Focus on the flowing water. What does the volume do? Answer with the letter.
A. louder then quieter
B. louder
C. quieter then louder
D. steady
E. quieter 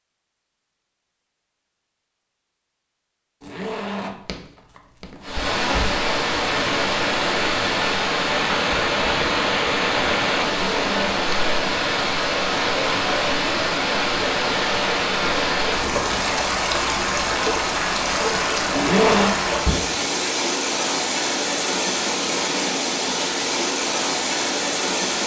D.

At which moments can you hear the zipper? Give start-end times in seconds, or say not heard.
3.4-6.0, 10.4-11.4, 18.8-19.4.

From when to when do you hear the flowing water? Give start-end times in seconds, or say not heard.
5.2-25.2.